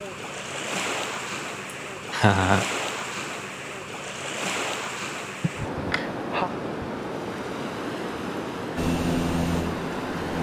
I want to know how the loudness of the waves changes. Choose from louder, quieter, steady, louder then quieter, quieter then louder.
steady.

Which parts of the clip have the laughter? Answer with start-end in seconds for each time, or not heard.
2.1-2.6, 5.4-6.5.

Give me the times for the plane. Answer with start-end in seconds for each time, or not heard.
8.8-10.3.